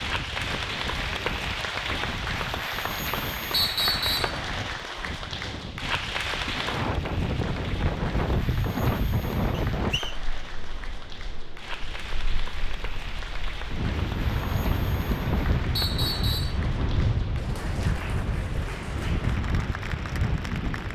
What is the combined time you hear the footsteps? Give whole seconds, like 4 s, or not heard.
not heard.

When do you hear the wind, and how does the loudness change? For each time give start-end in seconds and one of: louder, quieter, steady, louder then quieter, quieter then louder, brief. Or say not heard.
0.0-20.9 louder.